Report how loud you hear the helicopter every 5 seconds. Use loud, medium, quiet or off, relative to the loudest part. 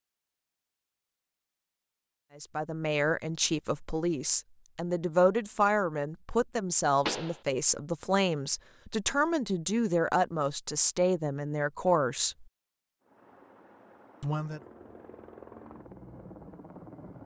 off, off, medium, loud.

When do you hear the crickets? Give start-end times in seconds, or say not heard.
not heard.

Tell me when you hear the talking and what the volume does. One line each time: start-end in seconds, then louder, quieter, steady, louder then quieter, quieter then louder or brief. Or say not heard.
2.4-12.4 steady
14.2-14.6 brief.